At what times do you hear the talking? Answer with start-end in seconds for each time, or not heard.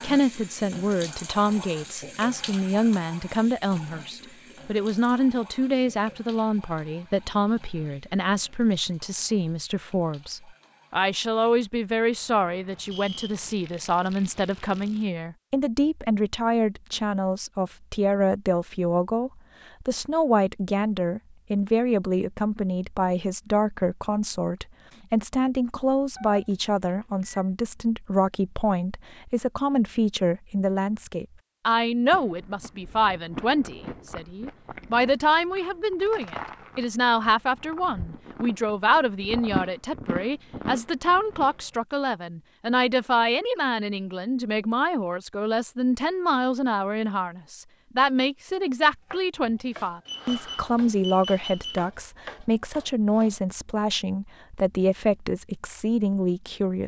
0.0-56.8.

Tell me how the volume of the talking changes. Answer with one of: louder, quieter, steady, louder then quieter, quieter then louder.
steady.